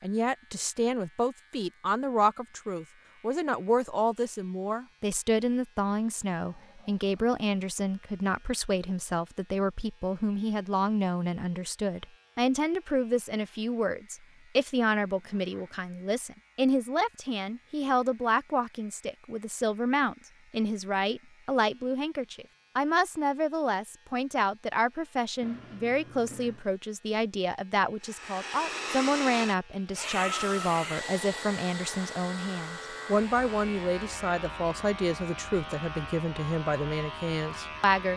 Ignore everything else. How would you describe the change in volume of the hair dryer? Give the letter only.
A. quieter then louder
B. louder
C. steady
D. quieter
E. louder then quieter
D.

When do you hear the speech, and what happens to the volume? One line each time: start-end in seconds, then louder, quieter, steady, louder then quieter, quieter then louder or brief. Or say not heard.
0.0-38.1 steady.